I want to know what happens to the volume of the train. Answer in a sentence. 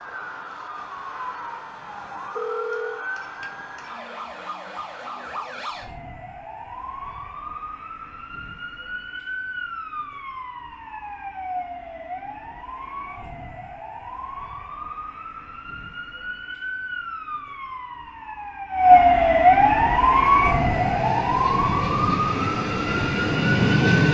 The volume of the train goes up.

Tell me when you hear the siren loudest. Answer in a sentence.
The volume of the siren peaks at 19 seconds.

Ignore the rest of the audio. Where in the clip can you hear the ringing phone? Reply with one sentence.
You can hear the ringing phone from 2.4 to 3.0 s.